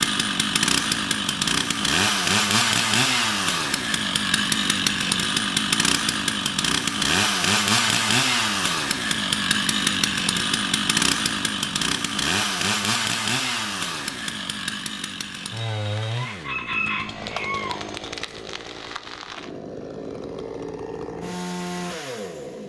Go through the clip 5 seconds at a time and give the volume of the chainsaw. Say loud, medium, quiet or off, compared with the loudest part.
loud, loud, loud, medium, medium.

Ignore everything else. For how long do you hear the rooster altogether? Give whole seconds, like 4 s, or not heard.
2 s.